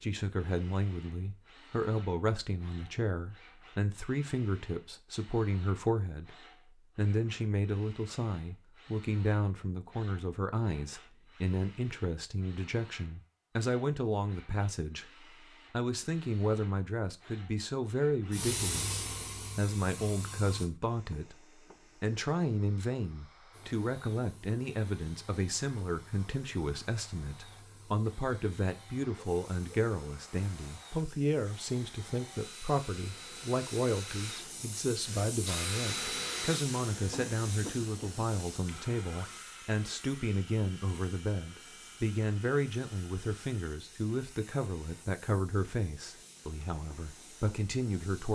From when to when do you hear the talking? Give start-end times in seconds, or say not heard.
0.0-6.3, 7.0-21.4, 22.0-48.3.